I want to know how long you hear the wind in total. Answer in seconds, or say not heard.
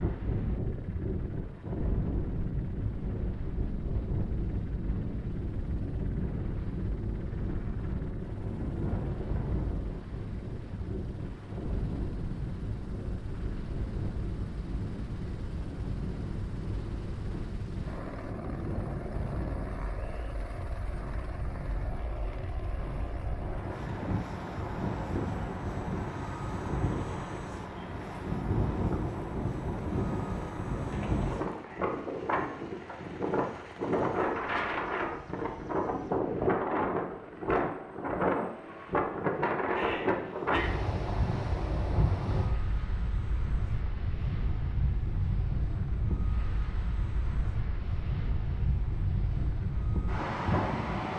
51 s.